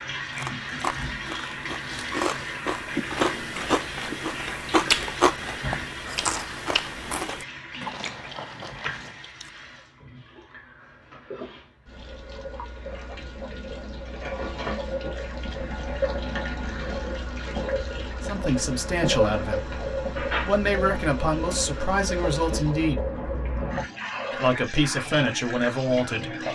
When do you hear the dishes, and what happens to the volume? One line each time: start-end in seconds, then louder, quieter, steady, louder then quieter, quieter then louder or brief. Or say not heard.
not heard.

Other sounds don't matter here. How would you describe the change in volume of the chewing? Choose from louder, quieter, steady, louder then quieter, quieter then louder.
louder then quieter.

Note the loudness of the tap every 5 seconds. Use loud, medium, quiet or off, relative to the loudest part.
loud, medium, medium, loud, loud, loud.